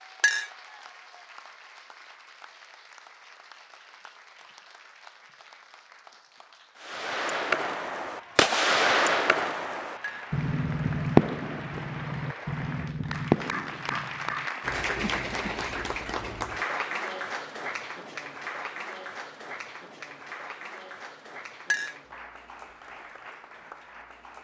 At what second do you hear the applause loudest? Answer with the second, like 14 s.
15 s.